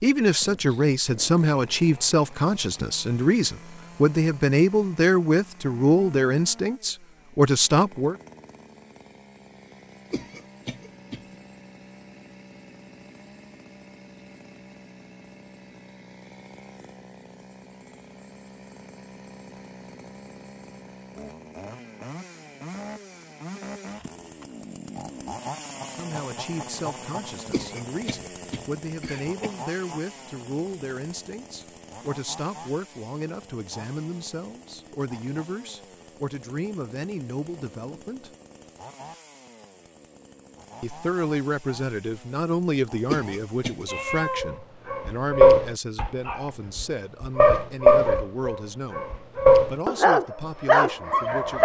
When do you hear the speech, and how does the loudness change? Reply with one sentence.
The speech can be heard from 0.0 to 8.2 s, at a steady volume; from 25.9 to 38.3 s, at a steady volume; and from 40.8 to 51.6 s, getting quieter.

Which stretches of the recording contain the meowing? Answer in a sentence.
The meowing can be heard from 43.9 to 44.5 s.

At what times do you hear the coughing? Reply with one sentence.
The coughing can be heard from 10.1 to 11.3 s, from 27.5 to 29.5 s and from 43.0 to 43.9 s.